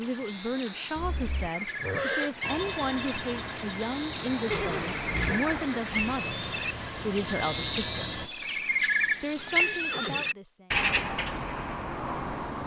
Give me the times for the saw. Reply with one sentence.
You can hear the saw from 2.4 to 8.3 s.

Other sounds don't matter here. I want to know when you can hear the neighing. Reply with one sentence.
You can hear the neighing from 0.9 to 2.3 s, from 4.5 to 5.5 s and from 9.3 to 10.3 s.